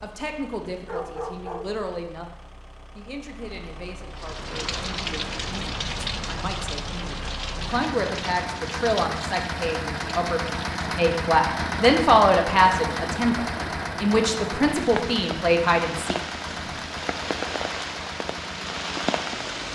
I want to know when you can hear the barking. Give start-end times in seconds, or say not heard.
0.8-1.8.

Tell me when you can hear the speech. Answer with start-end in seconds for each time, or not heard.
0.0-16.7.